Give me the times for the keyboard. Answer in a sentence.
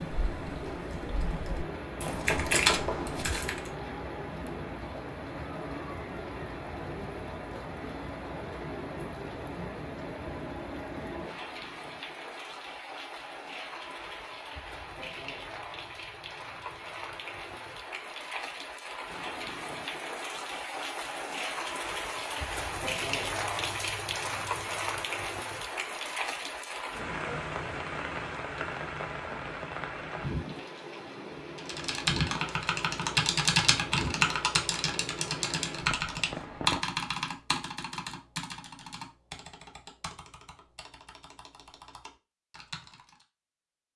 The keyboard can be heard from 0.0 to 3.7 s and from 31.6 to 43.2 s.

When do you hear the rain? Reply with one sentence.
The rain can be heard from 0.0 to 36.8 s.